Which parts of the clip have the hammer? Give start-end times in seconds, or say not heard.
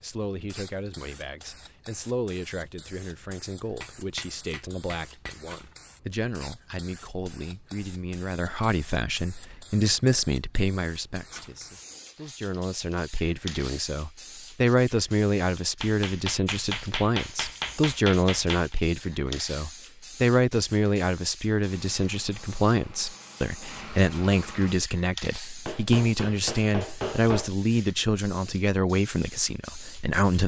3.8-5.3, 15.8-18.8, 25.6-27.5.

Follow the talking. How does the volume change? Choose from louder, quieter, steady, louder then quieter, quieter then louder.
louder.